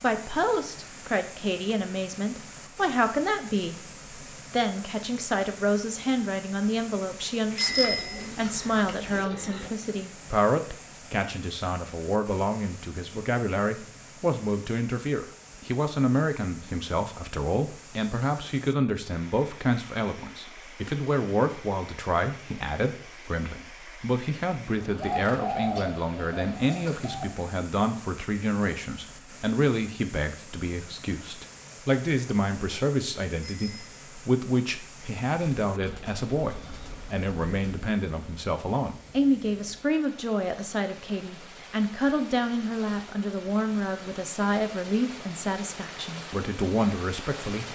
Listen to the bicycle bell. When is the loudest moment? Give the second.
8 s.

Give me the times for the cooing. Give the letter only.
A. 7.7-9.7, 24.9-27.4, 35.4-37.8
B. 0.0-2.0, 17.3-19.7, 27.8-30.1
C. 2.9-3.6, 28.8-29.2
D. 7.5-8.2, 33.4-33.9
A.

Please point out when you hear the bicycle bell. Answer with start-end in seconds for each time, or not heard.
7.5-8.2, 33.4-33.9.